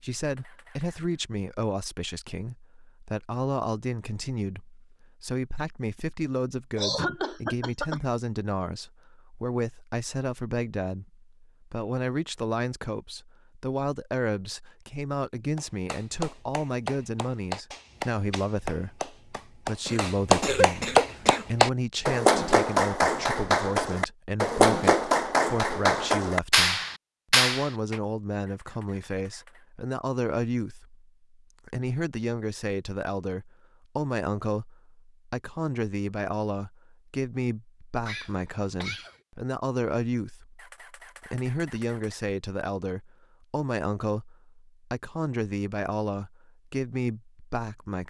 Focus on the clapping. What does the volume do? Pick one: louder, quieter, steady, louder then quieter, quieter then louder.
louder.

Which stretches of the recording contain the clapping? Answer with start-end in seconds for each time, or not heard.
15.6-28.0.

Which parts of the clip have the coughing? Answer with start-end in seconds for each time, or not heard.
6.8-8.0, 19.9-21.6, 38.0-39.1.